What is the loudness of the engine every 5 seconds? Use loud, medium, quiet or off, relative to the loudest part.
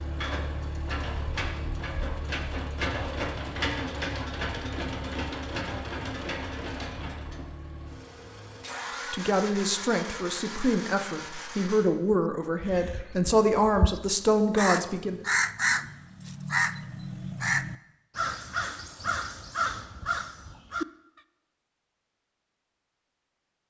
loud, loud, medium, off, off.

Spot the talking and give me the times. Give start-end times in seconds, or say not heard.
9.1-15.2.